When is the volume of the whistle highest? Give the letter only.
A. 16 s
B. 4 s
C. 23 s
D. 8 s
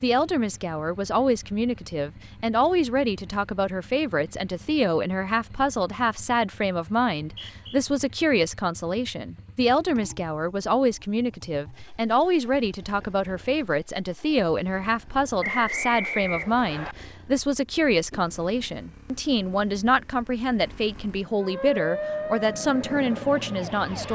A.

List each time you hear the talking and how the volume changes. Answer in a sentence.
You can hear the talking from 0.0 to 24.0 s, at a steady volume.